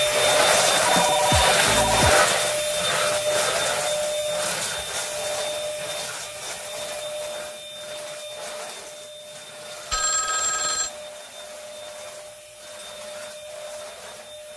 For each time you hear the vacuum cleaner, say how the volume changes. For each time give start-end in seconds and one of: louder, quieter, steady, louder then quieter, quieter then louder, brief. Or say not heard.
0.0-14.5 quieter.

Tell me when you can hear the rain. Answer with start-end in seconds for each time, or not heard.
not heard.